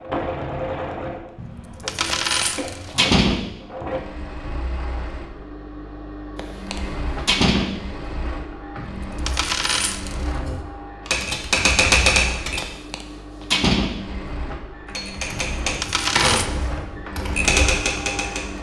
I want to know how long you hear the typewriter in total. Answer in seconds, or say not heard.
6 s.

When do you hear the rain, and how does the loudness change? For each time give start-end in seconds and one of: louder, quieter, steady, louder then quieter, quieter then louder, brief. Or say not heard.
not heard.